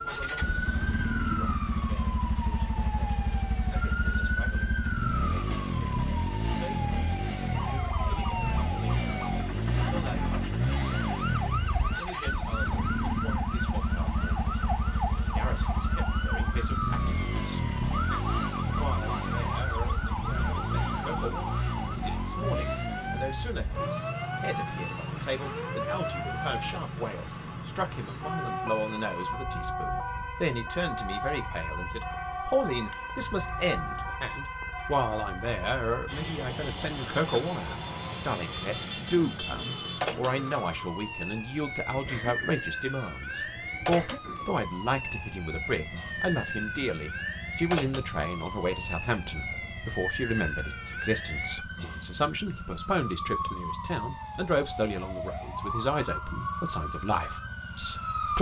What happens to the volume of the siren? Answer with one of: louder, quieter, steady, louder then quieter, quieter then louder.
steady.